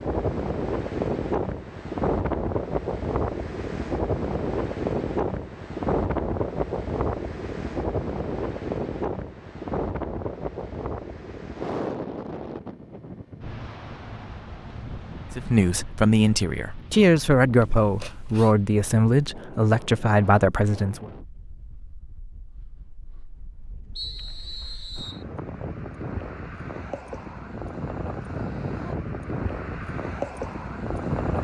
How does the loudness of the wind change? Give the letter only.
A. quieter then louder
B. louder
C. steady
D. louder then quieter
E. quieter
A.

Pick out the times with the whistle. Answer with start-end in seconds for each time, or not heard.
23.9-25.2.